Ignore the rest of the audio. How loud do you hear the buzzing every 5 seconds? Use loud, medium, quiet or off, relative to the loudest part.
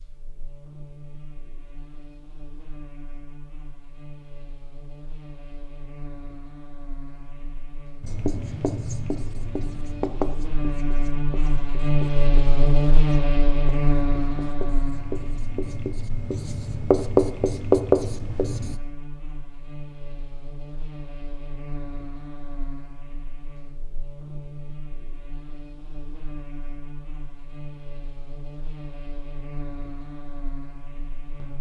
quiet, quiet, loud, quiet, quiet, quiet, quiet.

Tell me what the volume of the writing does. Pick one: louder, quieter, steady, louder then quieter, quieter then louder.
quieter then louder.